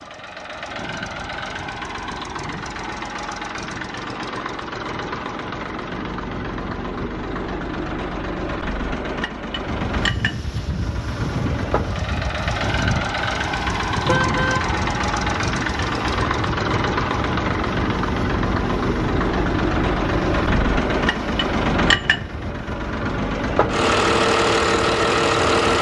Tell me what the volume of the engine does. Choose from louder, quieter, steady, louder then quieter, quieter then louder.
louder.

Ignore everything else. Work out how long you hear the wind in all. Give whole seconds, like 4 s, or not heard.
16 s.